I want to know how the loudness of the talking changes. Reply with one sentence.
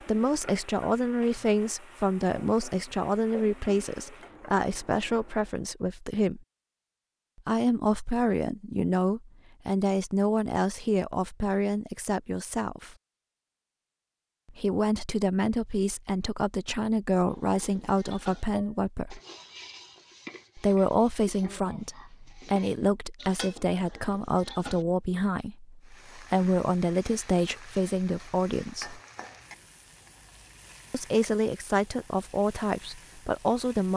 The loudness of the talking stays about the same.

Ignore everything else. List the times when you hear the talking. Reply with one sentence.
The talking can be heard from 0.1 to 6.4 s, from 7.5 to 12.9 s, from 14.4 to 19.2 s, from 20.6 to 29.0 s and from 30.9 to 33.9 s.